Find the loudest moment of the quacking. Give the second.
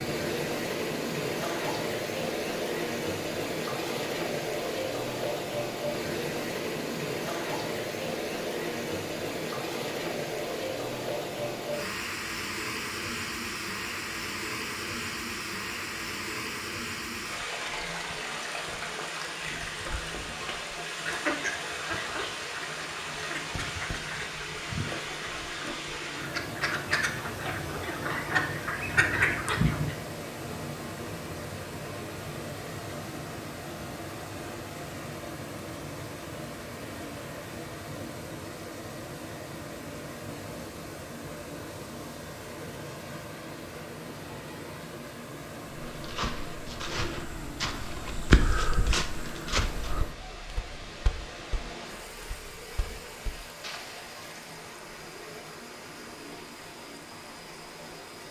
29 s.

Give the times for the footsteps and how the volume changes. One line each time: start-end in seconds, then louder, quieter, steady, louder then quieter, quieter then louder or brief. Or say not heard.
45.7-54.1 louder then quieter.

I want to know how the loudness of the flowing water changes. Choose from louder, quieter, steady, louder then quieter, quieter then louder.
quieter.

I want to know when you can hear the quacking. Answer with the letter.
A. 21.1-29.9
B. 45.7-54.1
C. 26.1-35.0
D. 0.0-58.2
A.